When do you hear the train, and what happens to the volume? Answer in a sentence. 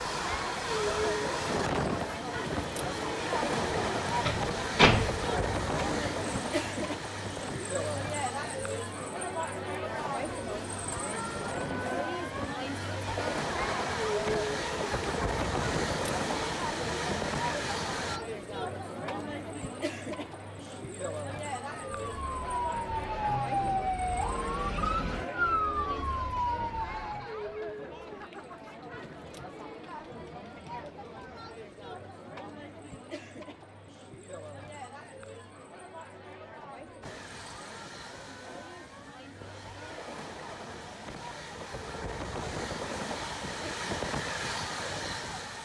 You can hear the train from 0.0 to 18.2 s, getting quieter then louder; and from 37.0 to 45.6 s, getting louder.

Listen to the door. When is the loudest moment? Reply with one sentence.
The loudest moment of the door is at 5 seconds.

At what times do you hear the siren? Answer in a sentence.
You can hear the siren from 21.8 to 27.4 s.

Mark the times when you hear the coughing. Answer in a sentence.
The coughing can't be heard in this clip.